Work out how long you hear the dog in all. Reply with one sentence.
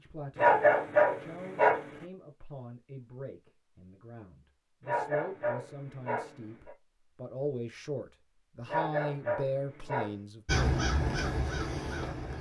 The dog can be heard for 5 seconds in total.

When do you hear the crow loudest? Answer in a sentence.
The loudest moment of the crow is at 11 seconds.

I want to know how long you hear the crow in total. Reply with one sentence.
The crow can be heard for 2 seconds in total.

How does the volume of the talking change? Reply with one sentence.
The volume of the talking goes up.